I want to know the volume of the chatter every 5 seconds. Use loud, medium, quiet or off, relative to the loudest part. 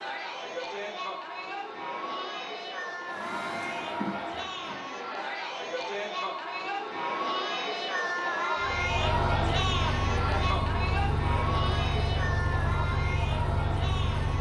medium, loud, loud.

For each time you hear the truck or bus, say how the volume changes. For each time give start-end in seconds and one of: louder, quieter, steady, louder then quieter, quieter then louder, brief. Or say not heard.
3.1-5.0 brief
8.6-14.3 steady.